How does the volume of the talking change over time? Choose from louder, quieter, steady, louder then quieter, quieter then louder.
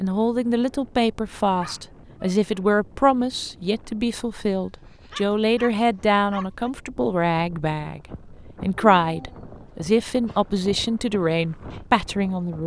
steady.